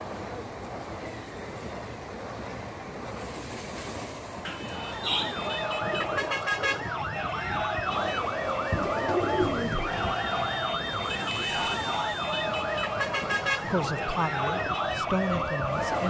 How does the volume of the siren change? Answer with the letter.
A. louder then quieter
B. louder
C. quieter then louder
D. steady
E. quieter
D.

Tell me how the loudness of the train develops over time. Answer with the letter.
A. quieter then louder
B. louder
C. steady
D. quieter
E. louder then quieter
C.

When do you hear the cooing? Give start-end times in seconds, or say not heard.
4.5-6.5, 8.7-10.2.